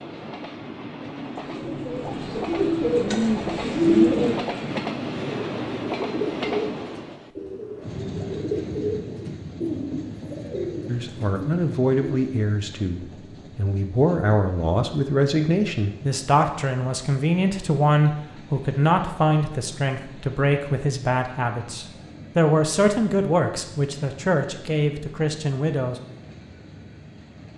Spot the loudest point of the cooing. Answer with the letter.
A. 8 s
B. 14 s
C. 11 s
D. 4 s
D.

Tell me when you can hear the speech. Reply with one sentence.
The speech can be heard from 10.8 to 25.9 s.